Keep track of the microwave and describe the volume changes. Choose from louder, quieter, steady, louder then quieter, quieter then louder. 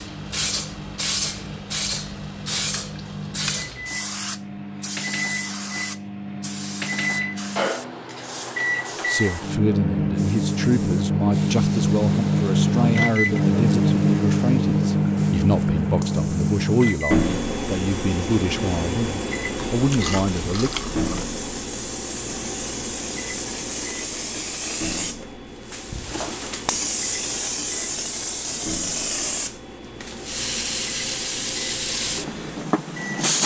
louder then quieter.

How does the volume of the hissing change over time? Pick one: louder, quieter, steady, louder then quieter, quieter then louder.
quieter then louder.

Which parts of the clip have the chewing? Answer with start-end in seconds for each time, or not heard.
19.8-21.3.